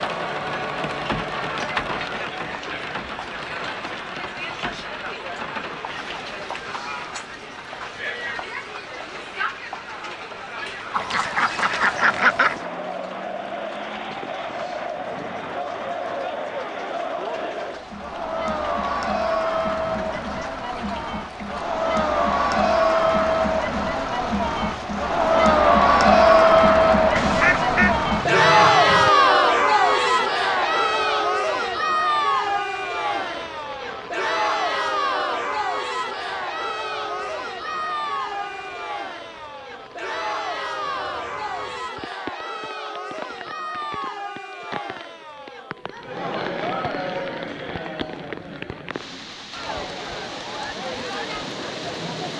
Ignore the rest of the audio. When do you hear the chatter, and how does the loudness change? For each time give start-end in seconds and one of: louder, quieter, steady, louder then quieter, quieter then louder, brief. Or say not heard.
0.0-52.3 louder then quieter.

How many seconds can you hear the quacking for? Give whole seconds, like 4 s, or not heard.
4 s.